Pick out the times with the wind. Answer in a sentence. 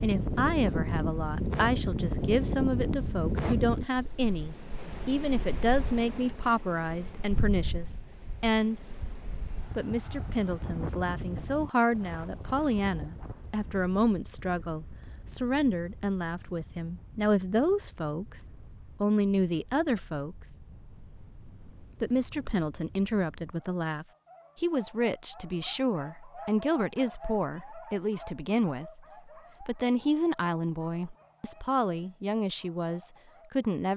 You can hear the wind from 0.0 to 23.6 s.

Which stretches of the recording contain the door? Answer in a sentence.
The door can't be heard in this clip.